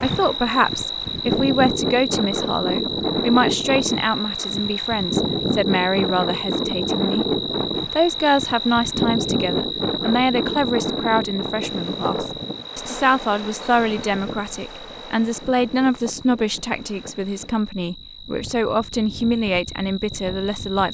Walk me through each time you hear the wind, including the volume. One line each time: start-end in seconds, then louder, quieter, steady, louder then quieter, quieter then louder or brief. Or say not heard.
0.0-20.8 quieter.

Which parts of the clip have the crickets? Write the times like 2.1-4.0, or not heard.
0.0-20.8.